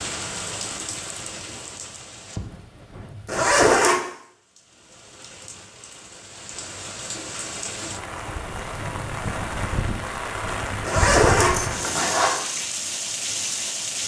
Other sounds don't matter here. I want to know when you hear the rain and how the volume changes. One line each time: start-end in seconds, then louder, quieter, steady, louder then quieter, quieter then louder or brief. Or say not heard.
0.0-14.0 quieter then louder.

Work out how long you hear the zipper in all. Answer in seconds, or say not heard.
2 s.